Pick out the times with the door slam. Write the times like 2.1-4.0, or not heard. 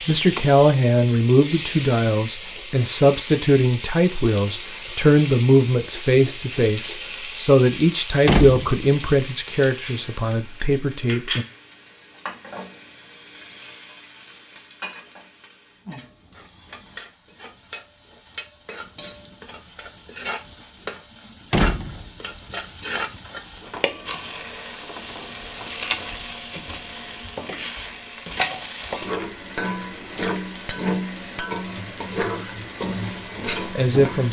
8.2-8.8, 21.5-22.1.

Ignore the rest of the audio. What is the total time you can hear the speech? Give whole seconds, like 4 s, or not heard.
12 s.